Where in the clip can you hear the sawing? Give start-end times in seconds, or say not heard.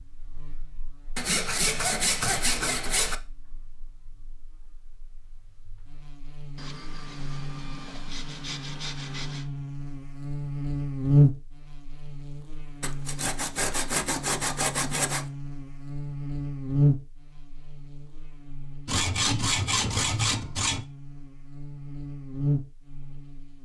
1.1-3.1, 6.5-9.5, 12.8-15.2, 18.9-20.9.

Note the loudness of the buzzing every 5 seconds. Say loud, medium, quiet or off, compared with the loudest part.
quiet, quiet, loud, loud, medium.